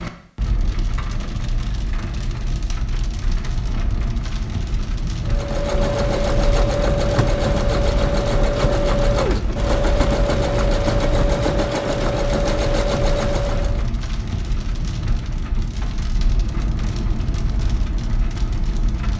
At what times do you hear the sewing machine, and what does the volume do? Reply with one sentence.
The sewing machine can be heard from 5.2 to 13.8 s, at a steady volume.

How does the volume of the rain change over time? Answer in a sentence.
The loudness of the rain stays about the same.